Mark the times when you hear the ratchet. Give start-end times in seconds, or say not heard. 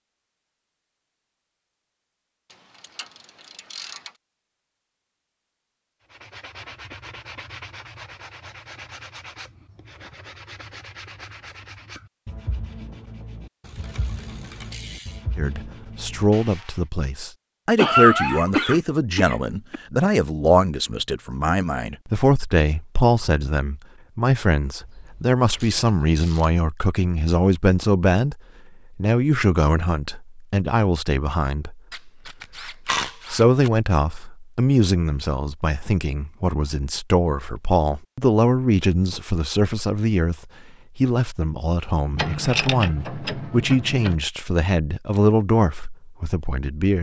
2.5-4.1, 13.6-15.2, 24.8-26.5, 31.9-33.7, 42.1-44.1.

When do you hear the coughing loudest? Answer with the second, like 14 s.
18 s.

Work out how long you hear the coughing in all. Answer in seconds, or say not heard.
2 s.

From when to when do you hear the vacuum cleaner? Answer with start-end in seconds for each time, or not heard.
not heard.